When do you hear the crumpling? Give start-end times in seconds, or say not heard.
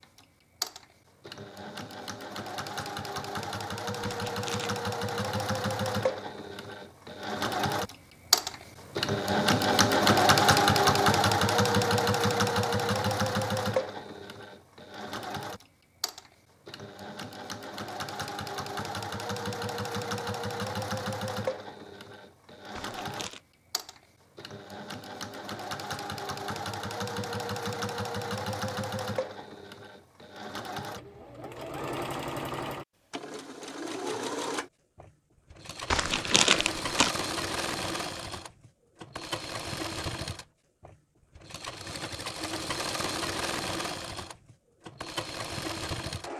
4.0-4.8, 22.8-23.4, 35.9-37.1.